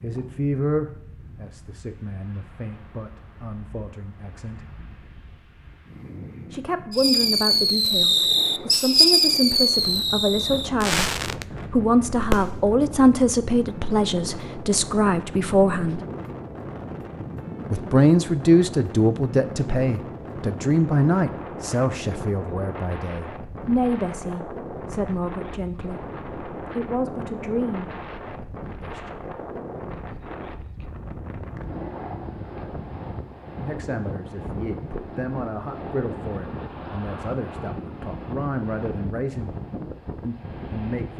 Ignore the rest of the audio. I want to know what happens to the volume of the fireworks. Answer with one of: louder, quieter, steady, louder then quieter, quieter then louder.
quieter.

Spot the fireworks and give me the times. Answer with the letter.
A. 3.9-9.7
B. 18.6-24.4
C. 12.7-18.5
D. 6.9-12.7
D.